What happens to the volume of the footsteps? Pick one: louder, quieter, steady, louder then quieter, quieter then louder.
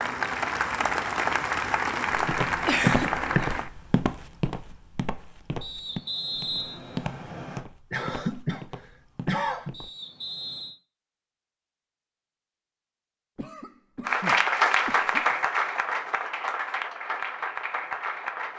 quieter.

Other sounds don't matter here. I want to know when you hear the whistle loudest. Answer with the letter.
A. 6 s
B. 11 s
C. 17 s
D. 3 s
A.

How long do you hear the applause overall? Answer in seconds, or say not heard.
8 s.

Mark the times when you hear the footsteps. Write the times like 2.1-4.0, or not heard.
2.1-9.9.